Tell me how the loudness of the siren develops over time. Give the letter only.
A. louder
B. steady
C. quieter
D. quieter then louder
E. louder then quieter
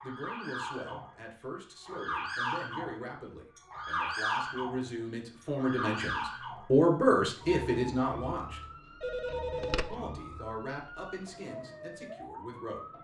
C.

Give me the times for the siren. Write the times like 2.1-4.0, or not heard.
0.0-12.9.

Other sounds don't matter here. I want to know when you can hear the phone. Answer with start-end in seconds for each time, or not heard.
9.0-9.9.